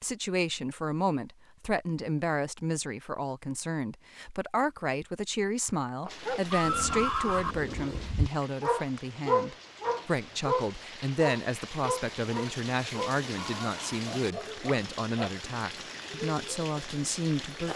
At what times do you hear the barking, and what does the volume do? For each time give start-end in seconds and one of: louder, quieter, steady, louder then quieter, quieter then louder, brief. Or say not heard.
6.2-15.4 louder then quieter.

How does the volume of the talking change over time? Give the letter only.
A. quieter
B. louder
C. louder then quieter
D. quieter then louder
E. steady
E.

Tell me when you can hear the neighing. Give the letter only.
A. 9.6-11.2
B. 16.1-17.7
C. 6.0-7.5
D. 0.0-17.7
C.